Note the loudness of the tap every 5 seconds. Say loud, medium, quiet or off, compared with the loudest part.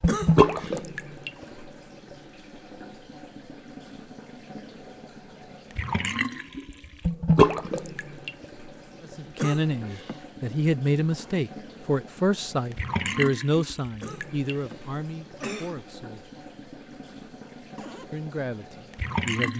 loud, loud, medium, medium.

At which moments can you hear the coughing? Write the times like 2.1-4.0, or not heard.
0.1-0.8, 9.3-10.2, 14.0-15.8.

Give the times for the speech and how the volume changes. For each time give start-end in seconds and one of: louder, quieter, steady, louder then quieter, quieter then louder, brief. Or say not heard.
9.0-16.4 quieter
18.1-19.5 brief.